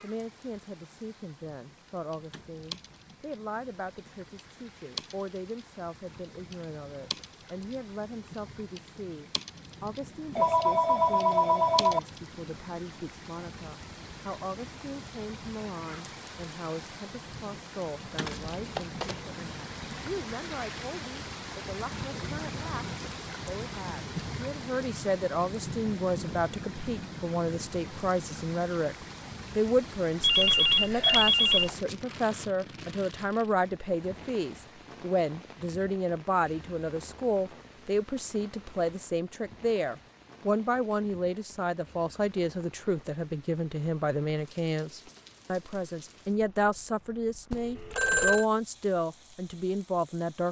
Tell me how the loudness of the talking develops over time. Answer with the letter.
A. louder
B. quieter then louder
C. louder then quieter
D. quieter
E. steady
A.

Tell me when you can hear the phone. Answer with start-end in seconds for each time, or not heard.
10.3-12.0, 30.2-31.8, 47.5-48.5.